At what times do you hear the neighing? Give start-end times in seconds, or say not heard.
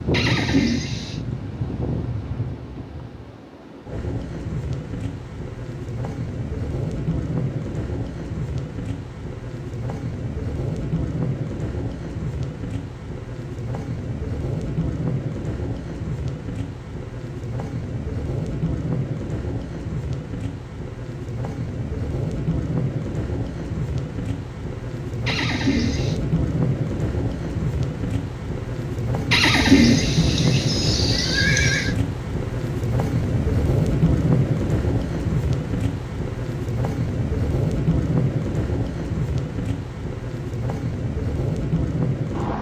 0.1-1.2, 25.2-26.1, 29.3-31.9.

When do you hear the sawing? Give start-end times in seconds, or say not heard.
not heard.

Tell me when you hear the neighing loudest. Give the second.
30 s.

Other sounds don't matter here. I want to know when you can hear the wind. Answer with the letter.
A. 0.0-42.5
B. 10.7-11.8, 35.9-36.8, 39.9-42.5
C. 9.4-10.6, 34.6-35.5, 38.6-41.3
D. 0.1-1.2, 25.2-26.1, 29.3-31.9
A.